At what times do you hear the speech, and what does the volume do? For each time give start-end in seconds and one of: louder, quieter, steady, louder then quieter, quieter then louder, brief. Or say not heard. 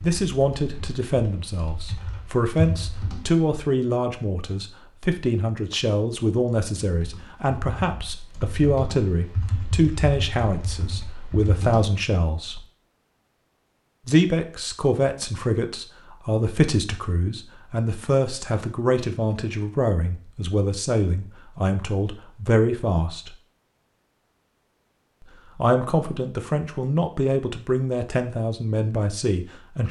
0.0-12.7 steady
14.1-23.4 steady
25.6-29.8 steady.